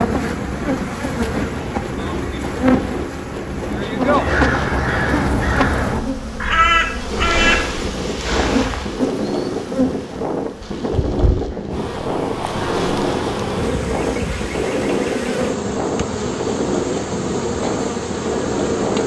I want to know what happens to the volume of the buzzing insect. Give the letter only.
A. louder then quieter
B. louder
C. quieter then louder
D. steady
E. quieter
D.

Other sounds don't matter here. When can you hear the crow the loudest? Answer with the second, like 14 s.
7 s.